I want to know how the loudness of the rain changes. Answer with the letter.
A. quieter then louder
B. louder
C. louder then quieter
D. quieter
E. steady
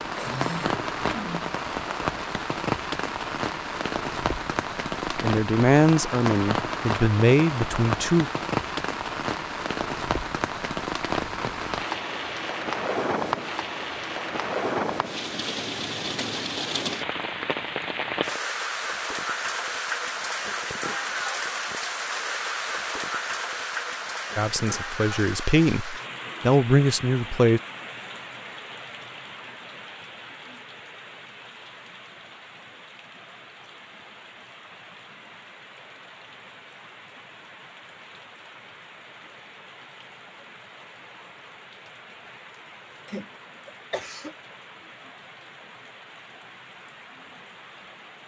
D.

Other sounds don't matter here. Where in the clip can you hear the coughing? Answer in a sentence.
The coughing can be heard from 0.1 to 1.5 s and from 43.0 to 44.4 s.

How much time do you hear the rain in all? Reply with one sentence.
You can hear the rain for 48 seconds altogether.